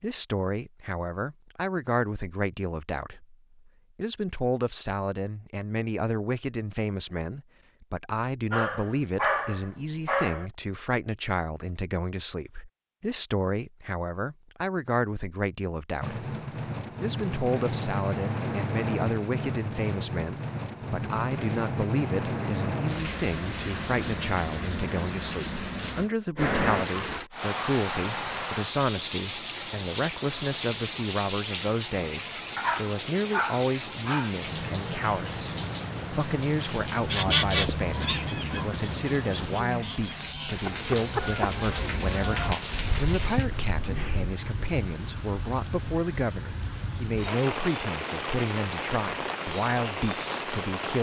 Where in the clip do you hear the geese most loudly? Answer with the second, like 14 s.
37 s.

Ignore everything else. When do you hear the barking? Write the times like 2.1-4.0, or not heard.
8.5-10.4, 32.5-34.4.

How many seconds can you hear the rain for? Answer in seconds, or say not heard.
35 s.